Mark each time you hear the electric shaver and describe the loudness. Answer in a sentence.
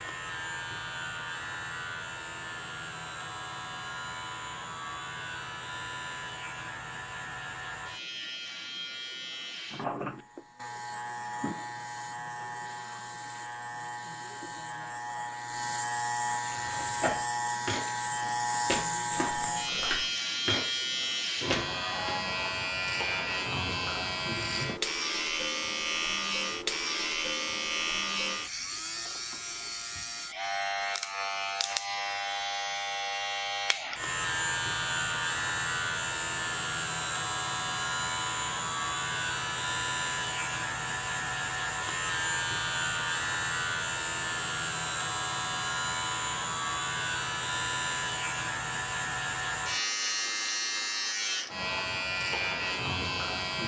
The electric shaver can be heard from 0.0 to 53.6 s, getting louder.